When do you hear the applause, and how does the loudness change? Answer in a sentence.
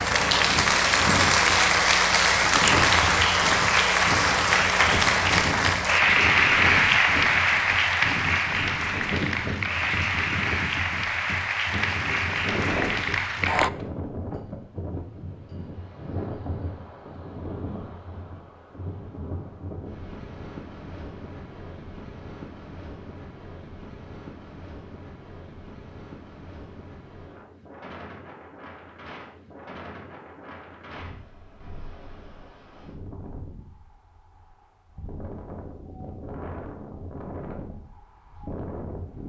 You can hear the applause from 0.0 to 13.7 s, getting quieter.